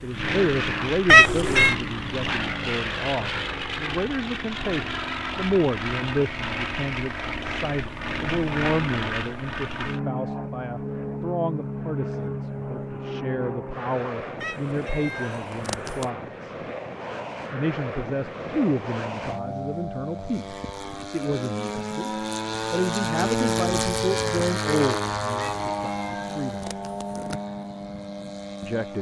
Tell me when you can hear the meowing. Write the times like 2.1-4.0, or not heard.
1.1-1.8, 14.4-16.1, 25.4-27.4.